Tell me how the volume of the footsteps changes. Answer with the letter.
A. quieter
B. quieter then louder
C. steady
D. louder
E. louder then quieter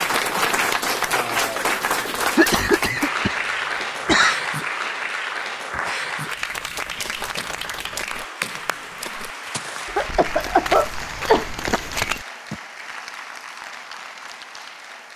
D.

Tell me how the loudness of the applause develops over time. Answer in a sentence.
The loudness of the applause goes down.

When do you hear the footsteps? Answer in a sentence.
You can hear the footsteps from 6.5 to 12.6 s.